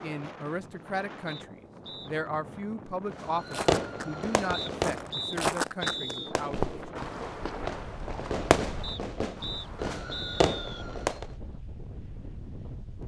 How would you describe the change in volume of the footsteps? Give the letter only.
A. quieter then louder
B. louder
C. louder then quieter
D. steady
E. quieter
C.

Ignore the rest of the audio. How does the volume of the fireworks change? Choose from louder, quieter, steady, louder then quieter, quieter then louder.
quieter then louder.